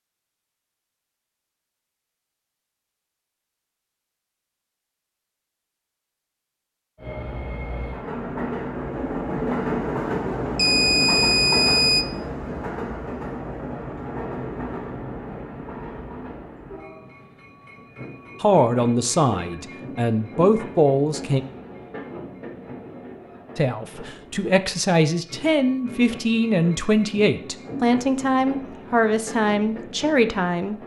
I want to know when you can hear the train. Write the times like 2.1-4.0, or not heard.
7.0-30.8.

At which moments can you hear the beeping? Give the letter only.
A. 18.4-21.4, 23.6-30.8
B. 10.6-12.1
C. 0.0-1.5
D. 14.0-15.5
B.